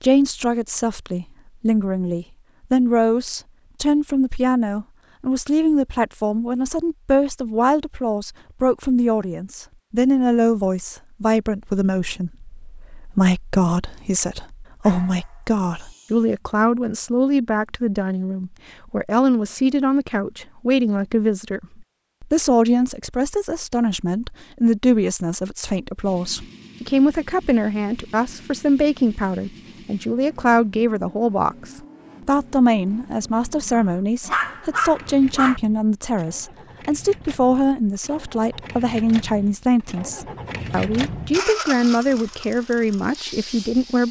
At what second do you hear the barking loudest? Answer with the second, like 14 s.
35 s.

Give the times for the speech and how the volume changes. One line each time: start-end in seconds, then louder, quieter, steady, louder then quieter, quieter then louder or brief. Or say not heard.
0.0-44.0 steady.